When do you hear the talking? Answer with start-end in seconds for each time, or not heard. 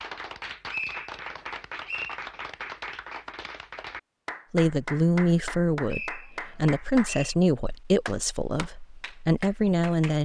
4.5-10.1.